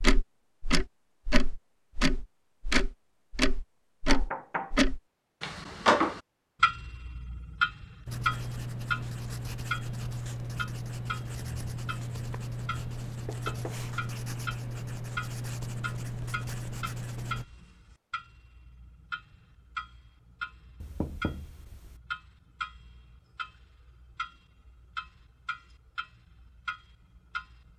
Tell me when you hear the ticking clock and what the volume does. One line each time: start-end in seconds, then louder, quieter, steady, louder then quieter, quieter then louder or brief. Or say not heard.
0.0-27.7 quieter.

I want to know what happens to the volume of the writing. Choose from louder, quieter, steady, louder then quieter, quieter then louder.
steady.